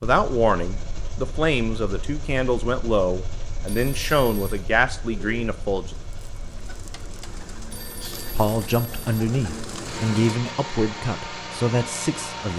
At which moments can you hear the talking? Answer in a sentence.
The talking can be heard from 0.0 to 6.0 s and from 8.2 to 12.5 s.